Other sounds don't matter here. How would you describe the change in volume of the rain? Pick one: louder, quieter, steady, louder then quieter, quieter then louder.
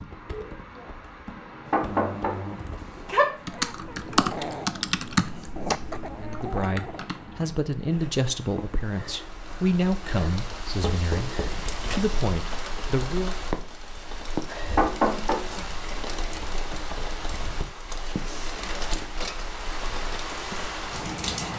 louder.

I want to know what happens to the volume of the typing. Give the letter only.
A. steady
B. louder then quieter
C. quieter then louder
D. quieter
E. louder
B.